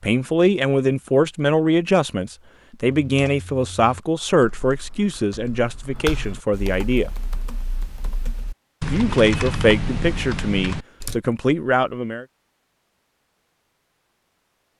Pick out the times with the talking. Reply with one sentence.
You can hear the talking from 0.0 to 7.1 s and from 8.8 to 12.2 s.